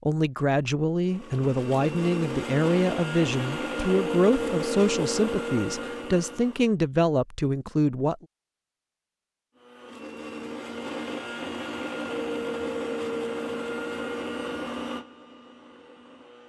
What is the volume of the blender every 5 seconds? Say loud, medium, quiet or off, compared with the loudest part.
loud, loud, loud, quiet.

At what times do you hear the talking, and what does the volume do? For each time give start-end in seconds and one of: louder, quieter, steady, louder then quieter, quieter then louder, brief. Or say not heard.
0.0-8.2 steady.